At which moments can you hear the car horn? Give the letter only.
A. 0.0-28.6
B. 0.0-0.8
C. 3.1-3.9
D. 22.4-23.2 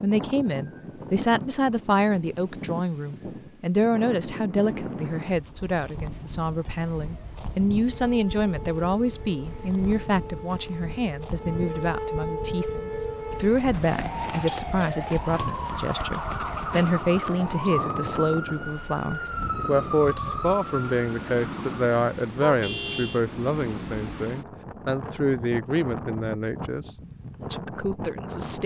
D.